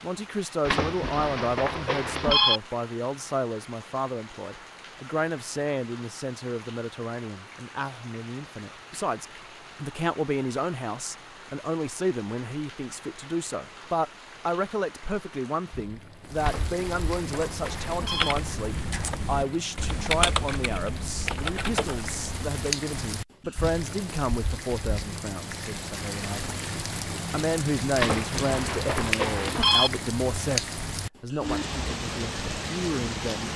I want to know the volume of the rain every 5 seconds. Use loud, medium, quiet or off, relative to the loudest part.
quiet, quiet, quiet, medium, loud, loud, loud.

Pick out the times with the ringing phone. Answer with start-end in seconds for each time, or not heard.
0.7-2.6, 16.4-18.4, 27.9-29.9.